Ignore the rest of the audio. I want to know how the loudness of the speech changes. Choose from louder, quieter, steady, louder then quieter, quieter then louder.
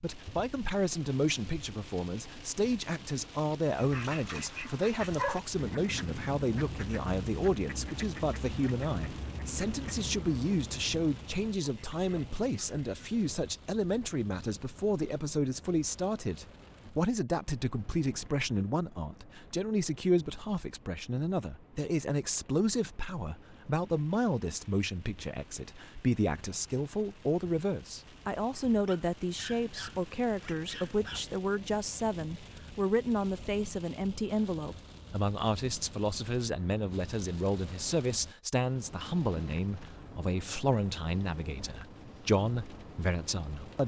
steady.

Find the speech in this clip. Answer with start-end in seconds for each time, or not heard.
0.0-43.8.